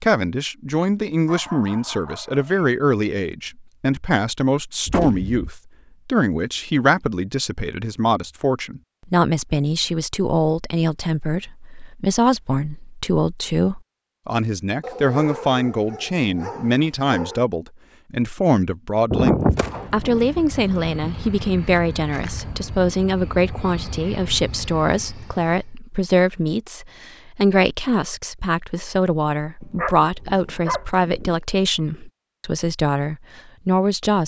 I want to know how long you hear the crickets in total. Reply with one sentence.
You can't hear the crickets here.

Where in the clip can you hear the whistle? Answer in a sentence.
The whistle can't be heard in this clip.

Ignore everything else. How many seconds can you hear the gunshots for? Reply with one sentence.
You can hear the gunshots for 3 seconds altogether.